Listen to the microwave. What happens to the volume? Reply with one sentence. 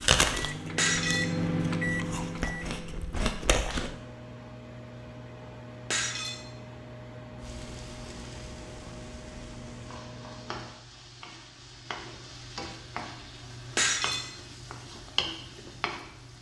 The loudness of the microwave goes down.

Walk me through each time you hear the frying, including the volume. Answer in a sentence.
You can hear the frying from 7.4 to 16.3 s, getting louder.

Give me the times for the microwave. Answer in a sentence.
The microwave can be heard from 0.1 to 10.9 s.